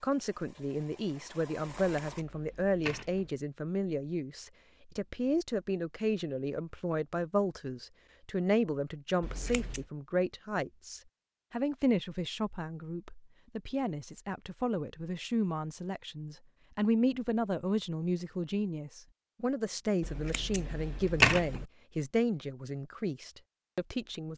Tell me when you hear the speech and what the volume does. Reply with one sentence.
You can hear the speech from 0.0 to 24.3 s, at a steady volume.